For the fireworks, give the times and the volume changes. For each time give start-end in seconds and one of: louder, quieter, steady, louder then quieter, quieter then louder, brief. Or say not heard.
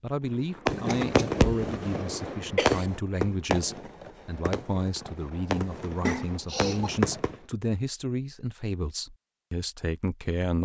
0.6-7.3 quieter.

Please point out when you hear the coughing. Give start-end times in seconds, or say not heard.
0.8-1.4, 2.4-2.9, 6.0-6.9.